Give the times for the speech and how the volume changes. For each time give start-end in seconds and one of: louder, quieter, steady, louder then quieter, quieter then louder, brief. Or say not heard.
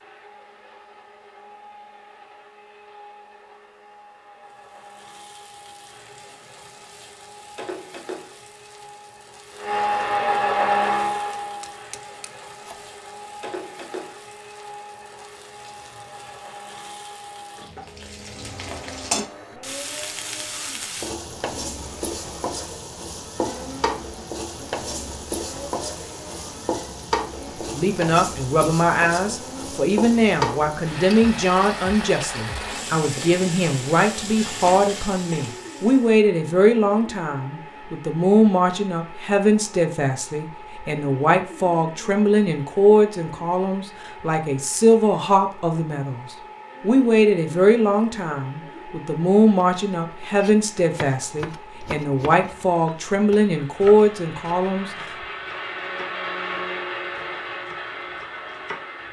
27.7-55.1 steady.